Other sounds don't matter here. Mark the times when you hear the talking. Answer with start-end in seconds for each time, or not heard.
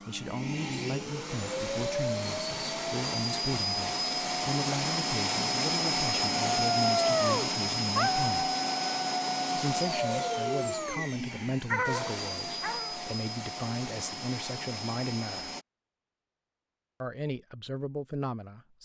0.1-8.4, 9.6-15.5, 17.0-18.8.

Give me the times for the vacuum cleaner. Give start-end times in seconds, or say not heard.
0.0-15.7.